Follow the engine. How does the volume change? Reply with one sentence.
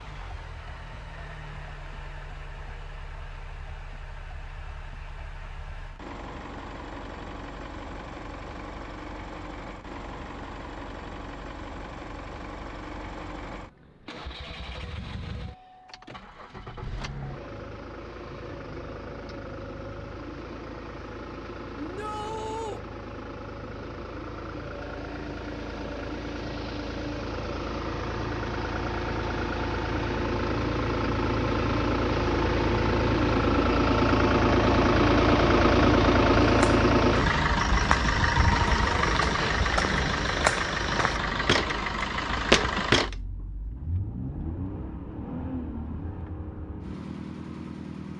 The volume of the engine goes up, then down.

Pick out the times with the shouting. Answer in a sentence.
The shouting can be heard from 21.8 to 22.8 s.